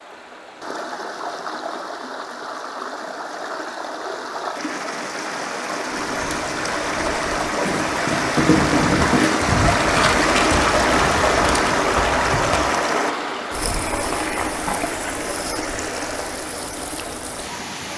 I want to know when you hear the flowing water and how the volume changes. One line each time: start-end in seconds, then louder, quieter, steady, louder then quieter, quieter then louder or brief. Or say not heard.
0.0-17.9 louder then quieter.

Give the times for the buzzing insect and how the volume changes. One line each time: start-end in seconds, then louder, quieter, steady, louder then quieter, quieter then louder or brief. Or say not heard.
not heard.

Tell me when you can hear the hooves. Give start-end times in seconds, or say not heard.
5.8-12.8.